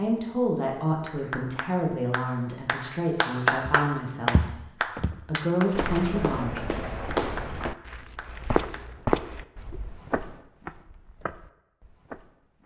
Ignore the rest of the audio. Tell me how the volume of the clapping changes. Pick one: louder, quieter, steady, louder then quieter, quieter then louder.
louder then quieter.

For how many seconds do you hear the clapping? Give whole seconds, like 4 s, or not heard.
8 s.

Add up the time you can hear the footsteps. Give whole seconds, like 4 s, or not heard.
9 s.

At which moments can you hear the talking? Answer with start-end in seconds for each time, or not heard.
0.0-4.5, 5.2-6.6.